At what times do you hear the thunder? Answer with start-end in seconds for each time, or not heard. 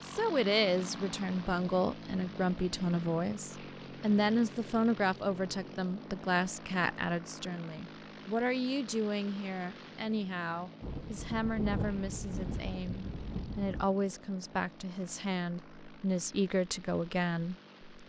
10.8-13.9.